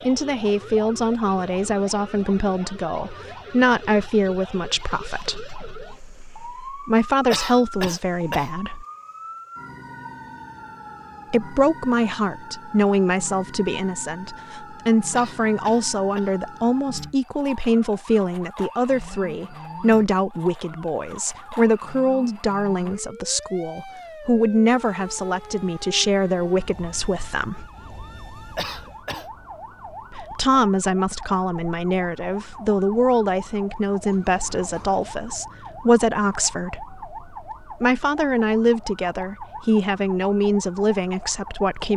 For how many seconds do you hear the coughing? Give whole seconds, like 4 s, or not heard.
3 s.